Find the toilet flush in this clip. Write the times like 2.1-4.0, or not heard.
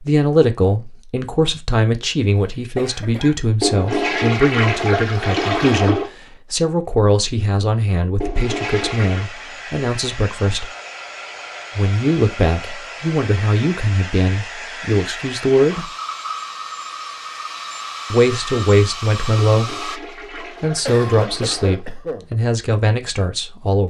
3.6-6.1, 8.2-9.3, 19.5-21.9.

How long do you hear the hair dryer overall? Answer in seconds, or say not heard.
12 s.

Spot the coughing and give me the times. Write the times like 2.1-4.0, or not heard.
2.8-3.4, 20.9-22.3.